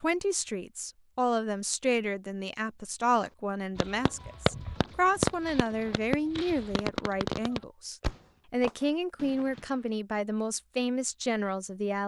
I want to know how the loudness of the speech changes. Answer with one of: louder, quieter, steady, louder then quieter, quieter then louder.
steady.